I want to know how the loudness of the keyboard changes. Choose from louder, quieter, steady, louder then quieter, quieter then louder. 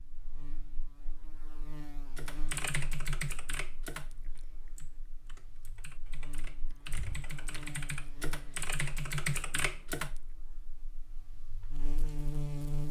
quieter then louder.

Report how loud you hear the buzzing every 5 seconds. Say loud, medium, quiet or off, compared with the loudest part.
quiet, quiet, loud.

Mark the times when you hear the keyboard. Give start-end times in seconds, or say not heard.
2.1-10.1.